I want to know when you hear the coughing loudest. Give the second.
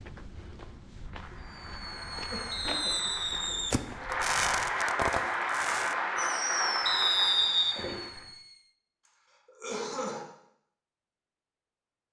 10 s.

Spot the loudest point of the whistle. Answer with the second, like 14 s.
7 s.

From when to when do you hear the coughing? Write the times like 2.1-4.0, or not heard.
2.3-3.6, 9.4-10.2.